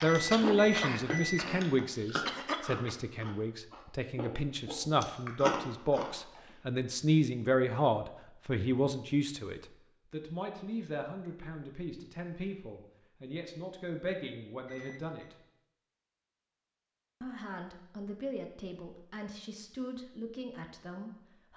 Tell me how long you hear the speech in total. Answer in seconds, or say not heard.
20 s.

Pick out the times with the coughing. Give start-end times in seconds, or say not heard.
0.3-3.0.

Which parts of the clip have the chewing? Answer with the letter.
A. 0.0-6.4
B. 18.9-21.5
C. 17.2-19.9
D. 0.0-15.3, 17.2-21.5
A.